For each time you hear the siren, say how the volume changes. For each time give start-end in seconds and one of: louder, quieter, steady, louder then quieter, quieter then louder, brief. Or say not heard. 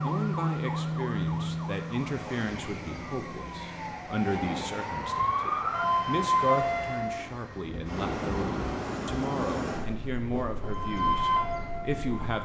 0.0-7.2 quieter then louder
10.7-12.3 brief.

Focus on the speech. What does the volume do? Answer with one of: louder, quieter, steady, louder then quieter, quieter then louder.
steady.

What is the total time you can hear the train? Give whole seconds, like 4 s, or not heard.
12 s.